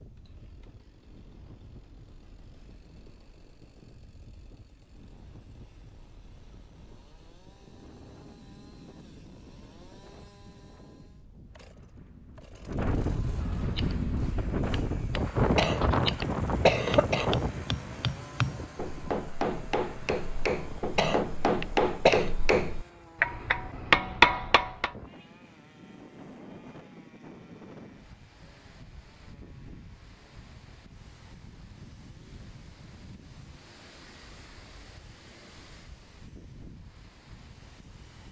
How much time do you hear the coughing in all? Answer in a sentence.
The coughing can be heard for 3 seconds in total.